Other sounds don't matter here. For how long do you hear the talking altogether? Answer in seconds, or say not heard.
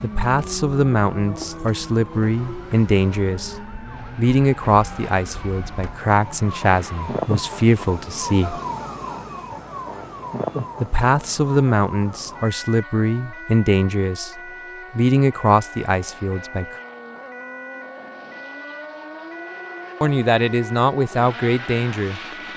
17 s.